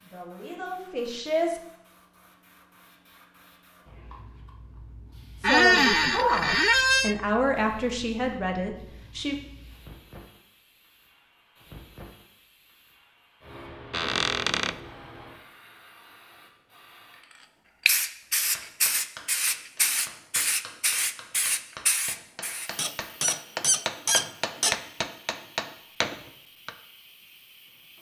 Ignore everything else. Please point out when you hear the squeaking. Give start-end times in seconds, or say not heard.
5.4-7.2, 13.9-14.8, 22.8-24.8.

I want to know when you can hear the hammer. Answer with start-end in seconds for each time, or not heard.
18.2-26.8.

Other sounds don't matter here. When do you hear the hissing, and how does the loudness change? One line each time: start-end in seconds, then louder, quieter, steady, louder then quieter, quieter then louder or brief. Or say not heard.
0.0-27.9 louder then quieter.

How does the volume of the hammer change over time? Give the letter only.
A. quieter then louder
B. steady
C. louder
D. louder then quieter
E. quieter
C.